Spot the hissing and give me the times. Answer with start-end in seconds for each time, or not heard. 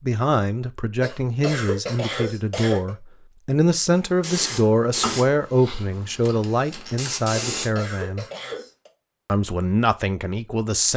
4.0-7.7.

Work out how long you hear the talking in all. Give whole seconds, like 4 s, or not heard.
10 s.